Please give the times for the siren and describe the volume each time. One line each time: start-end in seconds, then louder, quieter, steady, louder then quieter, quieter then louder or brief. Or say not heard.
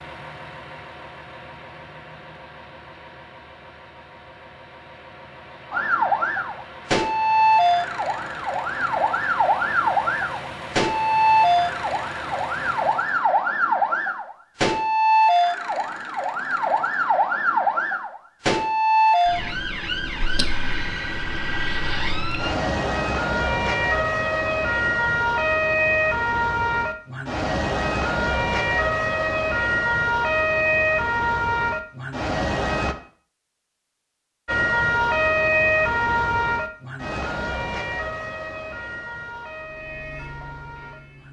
5.7-33.0 steady
34.5-41.2 quieter.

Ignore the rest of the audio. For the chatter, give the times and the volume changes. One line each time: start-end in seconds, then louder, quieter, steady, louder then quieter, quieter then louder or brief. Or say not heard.
not heard.